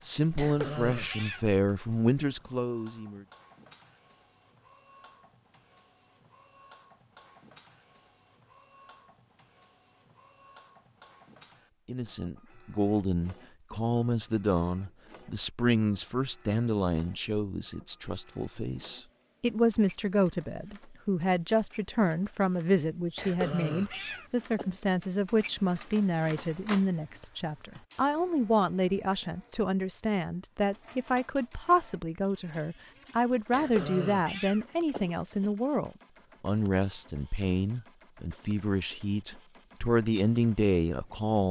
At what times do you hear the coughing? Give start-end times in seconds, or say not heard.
0.3-1.4, 23.1-24.8, 33.5-35.5.